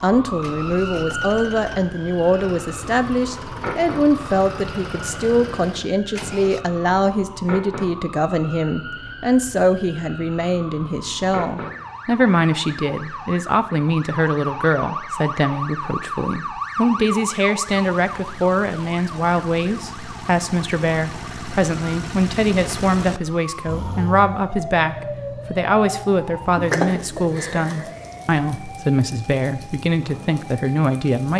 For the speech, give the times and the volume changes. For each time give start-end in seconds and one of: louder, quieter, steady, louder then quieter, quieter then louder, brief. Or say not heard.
0.0-31.3 steady.